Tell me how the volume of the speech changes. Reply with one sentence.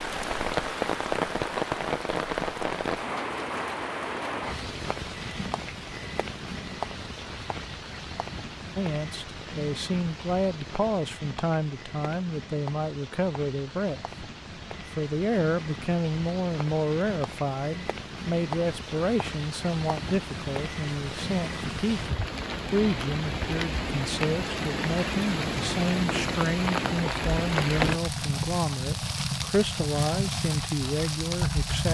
The volume of the speech stays about the same.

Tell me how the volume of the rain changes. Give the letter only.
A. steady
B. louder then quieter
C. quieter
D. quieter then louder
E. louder
D.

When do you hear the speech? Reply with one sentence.
The speech can be heard from 8.8 to 14.1 s and from 14.9 to 31.8 s.